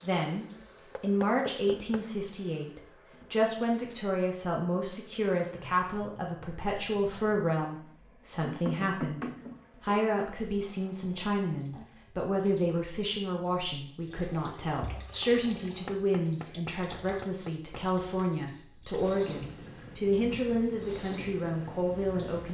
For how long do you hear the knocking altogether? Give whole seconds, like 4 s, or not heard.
4 s.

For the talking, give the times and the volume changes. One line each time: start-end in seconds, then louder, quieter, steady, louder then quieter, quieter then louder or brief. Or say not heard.
0.0-22.5 steady.